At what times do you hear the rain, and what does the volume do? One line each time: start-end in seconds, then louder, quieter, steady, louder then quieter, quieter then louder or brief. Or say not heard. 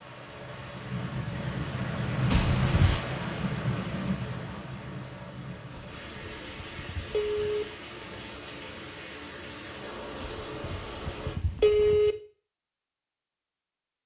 0.0-11.9 quieter.